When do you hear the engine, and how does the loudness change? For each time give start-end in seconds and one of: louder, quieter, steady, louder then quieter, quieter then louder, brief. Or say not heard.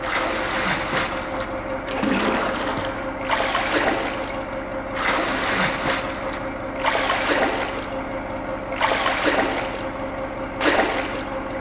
0.0-11.5 steady.